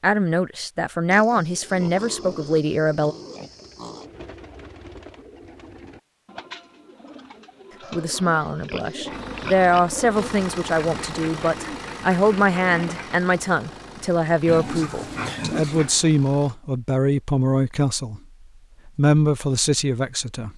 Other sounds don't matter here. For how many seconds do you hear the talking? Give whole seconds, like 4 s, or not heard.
15 s.